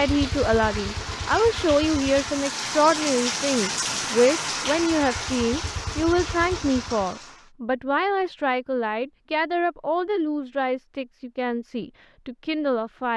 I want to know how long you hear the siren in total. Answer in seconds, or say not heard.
not heard.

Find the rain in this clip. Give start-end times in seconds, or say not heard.
0.0-7.5.